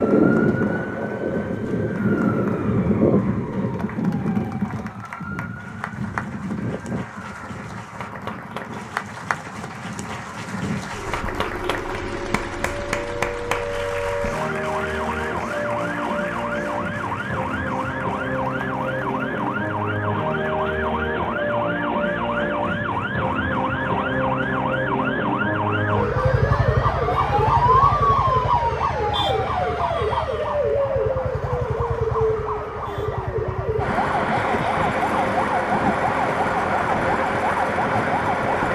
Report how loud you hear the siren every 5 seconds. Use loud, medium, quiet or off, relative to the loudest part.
loud, quiet, medium, medium, loud, loud, loud, loud.